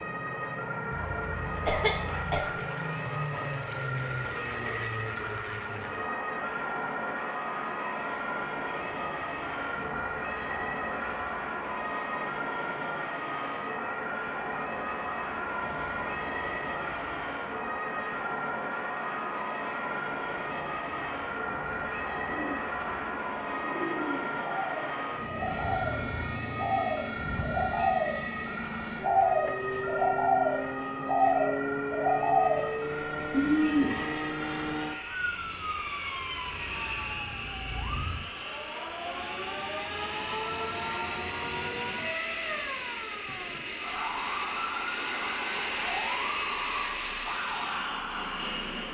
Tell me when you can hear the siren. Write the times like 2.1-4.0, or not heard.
0.0-48.7.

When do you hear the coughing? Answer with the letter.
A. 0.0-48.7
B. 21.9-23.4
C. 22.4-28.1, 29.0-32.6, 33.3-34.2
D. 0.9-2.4
D.